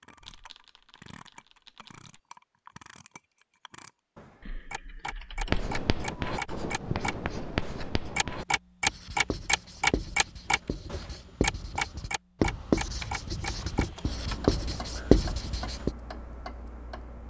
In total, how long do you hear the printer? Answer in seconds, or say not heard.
not heard.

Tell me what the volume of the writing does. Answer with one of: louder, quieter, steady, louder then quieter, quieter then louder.
quieter then louder.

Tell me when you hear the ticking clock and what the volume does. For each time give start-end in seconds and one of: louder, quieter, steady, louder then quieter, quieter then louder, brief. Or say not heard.
0.0-17.2 louder then quieter.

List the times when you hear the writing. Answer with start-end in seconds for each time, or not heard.
5.5-15.9.